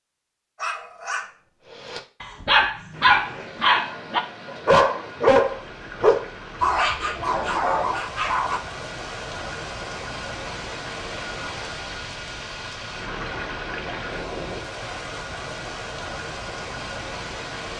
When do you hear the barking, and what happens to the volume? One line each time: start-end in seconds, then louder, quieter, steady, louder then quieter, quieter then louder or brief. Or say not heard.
0.6-8.6 louder then quieter.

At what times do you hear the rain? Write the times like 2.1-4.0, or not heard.
2.9-17.7.